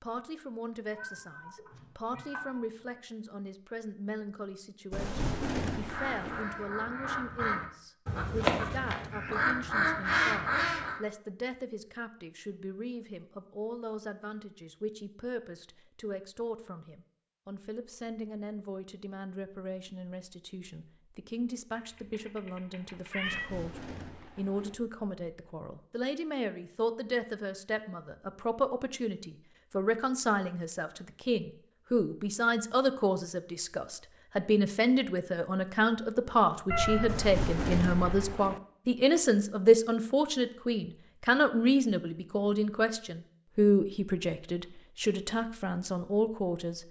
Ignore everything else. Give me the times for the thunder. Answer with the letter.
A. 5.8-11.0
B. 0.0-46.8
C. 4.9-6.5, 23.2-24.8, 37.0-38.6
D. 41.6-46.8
C.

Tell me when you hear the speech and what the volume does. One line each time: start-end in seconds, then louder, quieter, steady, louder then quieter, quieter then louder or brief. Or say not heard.
0.0-46.8 louder.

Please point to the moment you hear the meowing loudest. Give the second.
37 s.